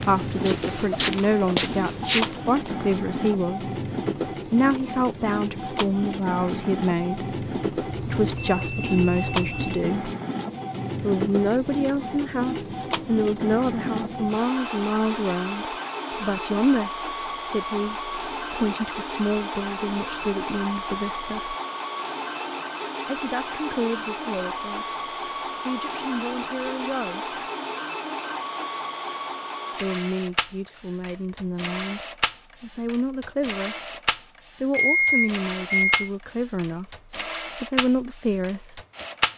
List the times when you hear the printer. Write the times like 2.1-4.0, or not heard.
0.0-39.3.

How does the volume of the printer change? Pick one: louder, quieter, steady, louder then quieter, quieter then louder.
steady.